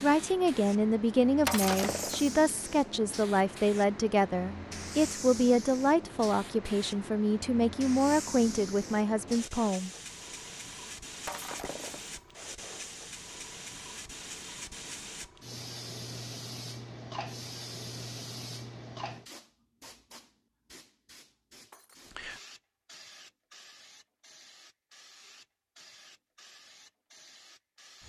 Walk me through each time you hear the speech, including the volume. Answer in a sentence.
You can hear the speech from 0.0 to 9.9 s, at a steady volume.